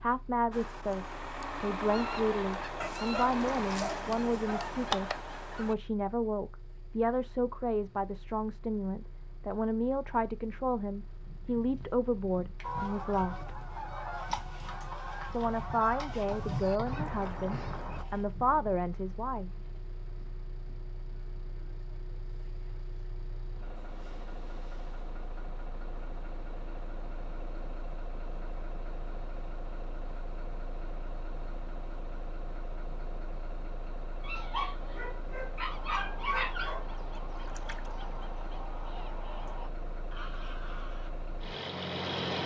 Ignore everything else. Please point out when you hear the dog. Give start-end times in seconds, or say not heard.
2.8-4.8, 34.2-36.9.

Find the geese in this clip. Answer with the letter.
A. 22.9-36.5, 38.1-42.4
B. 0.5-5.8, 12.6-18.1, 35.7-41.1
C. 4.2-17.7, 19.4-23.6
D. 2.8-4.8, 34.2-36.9
B.